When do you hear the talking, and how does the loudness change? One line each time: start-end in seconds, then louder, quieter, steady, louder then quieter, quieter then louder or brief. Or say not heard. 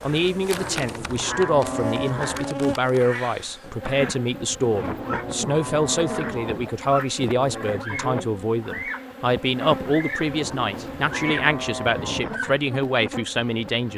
0.0-13.9 steady.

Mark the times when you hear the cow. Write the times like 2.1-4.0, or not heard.
0.5-2.5, 4.7-6.7, 10.3-12.4.